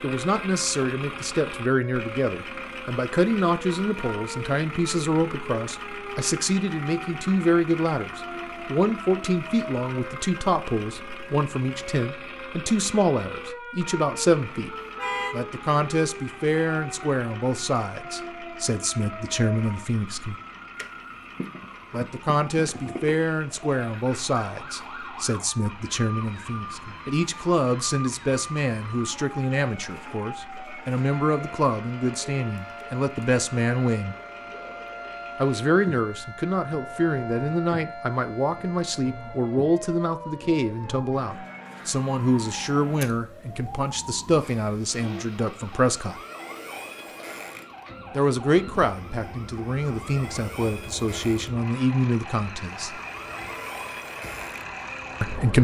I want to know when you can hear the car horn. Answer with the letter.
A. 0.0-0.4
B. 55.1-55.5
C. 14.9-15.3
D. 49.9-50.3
C.